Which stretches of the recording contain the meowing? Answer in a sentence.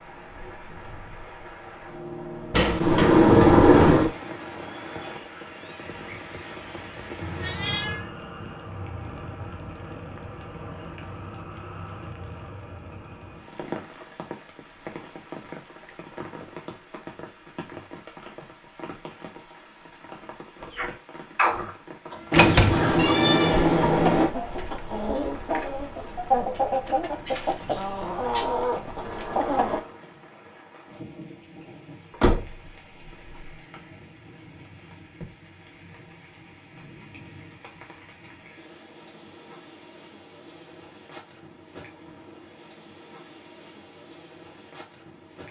The meowing can be heard from 7.2 to 8.1 s and from 22.9 to 23.7 s.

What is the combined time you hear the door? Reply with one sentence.
The door can be heard for 5 seconds in total.